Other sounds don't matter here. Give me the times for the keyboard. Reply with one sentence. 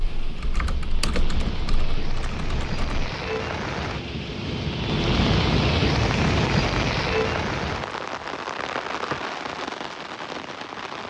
You can hear the keyboard from 0.0 to 3.0 s.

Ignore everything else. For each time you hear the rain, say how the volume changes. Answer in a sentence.
The rain can be heard from 0.0 to 11.0 s, getting louder then quieter.